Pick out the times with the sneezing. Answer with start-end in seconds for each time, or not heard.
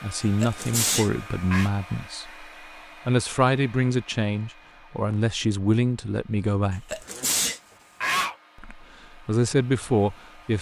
0.4-1.7, 6.9-8.3.